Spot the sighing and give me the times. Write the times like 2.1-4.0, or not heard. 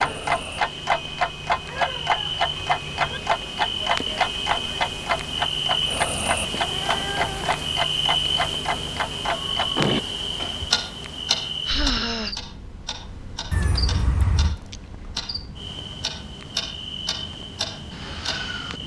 11.7-12.3.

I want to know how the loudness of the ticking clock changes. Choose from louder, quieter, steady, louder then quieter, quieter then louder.
quieter.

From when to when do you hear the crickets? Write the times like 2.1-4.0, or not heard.
0.0-18.8.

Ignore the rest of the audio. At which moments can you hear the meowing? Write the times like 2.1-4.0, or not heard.
1.6-3.2, 6.5-7.8, 13.5-14.6.